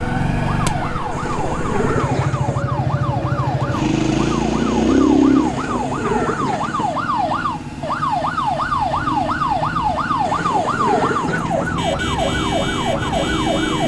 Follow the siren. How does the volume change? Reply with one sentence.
The loudness of the siren goes up.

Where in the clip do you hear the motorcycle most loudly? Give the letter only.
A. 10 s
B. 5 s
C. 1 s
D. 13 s
B.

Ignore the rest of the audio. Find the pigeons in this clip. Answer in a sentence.
The pigeons can be heard from 1.1 to 2.6 s, from 5.4 to 7.0 s and from 10.2 to 11.8 s.